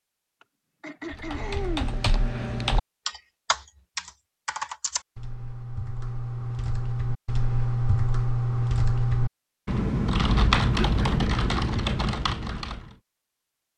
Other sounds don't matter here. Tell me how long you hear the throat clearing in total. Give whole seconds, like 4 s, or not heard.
2 s.